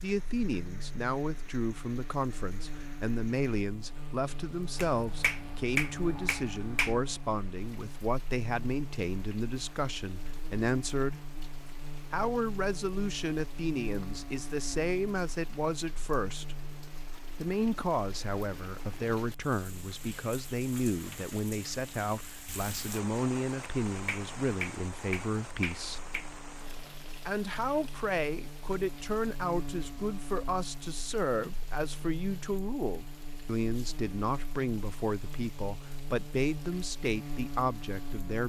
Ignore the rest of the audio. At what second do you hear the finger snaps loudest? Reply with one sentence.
The volume of the finger snaps peaks at 6 seconds.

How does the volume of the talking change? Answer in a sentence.
The loudness of the talking stays about the same.